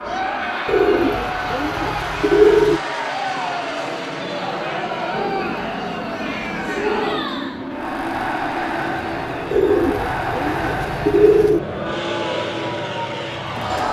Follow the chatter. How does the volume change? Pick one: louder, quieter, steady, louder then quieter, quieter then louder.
steady.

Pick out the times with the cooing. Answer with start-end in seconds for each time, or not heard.
0.7-2.8, 5.1-7.2, 9.5-11.6.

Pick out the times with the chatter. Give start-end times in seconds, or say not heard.
0.0-13.8.